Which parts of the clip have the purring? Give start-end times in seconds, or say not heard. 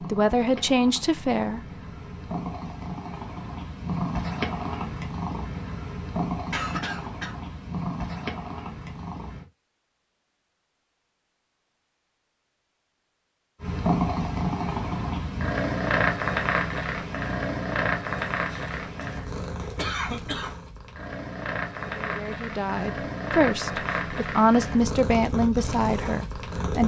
0.0-9.4, 13.6-26.8.